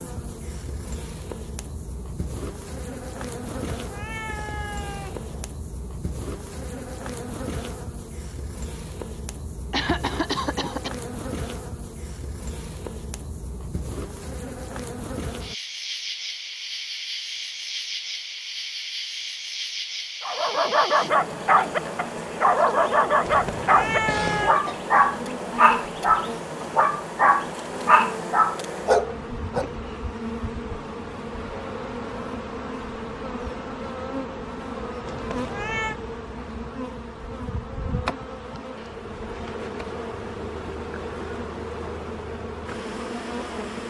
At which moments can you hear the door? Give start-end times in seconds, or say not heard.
not heard.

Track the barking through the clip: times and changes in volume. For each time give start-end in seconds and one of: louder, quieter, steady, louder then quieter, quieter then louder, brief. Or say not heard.
20.2-29.6 steady.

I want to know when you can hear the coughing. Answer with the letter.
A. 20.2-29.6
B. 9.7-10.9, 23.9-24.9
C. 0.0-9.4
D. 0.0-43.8
B.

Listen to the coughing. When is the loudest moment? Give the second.
10 s.